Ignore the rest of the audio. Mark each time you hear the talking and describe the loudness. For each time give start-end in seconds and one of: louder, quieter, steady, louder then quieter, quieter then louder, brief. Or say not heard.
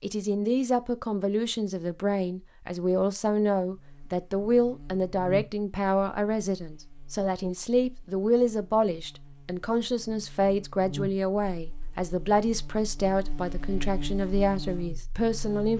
0.0-15.7 steady.